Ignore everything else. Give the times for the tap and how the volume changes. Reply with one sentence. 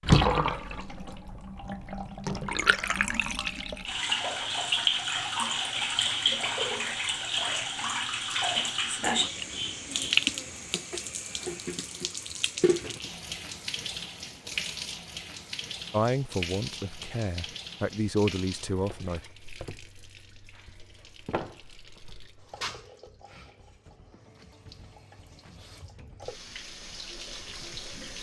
You can hear the tap from 0.0 to 28.1 s, getting quieter.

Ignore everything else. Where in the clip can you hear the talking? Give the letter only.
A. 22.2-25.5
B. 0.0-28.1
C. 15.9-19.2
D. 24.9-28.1
C.